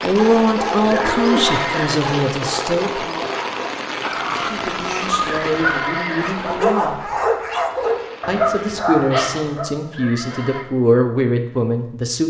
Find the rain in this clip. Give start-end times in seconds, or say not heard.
0.0-8.8.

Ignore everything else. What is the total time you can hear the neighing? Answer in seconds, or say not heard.
3 s.